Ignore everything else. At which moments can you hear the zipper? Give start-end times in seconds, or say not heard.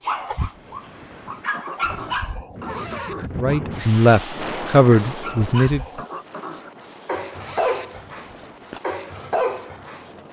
2.6-3.4, 7.3-8.8.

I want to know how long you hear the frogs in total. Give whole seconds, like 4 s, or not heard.
not heard.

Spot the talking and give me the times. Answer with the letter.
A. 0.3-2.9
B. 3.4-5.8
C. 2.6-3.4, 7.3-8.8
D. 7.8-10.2
B.